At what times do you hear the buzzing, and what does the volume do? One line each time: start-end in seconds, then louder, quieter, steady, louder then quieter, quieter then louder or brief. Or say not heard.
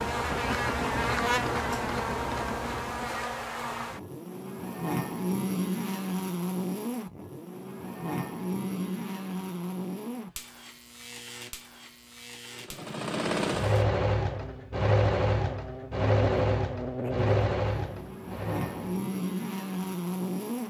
0.0-20.6 quieter then louder.